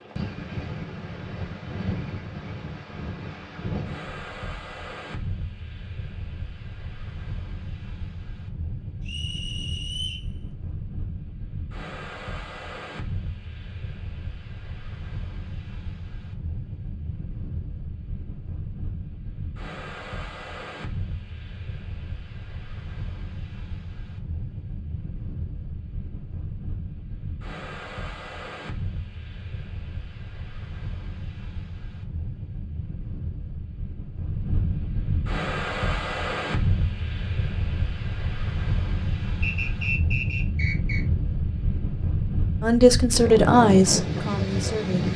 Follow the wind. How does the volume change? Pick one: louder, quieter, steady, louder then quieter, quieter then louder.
louder.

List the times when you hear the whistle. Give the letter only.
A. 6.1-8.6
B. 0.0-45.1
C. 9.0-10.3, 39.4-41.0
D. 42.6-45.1
C.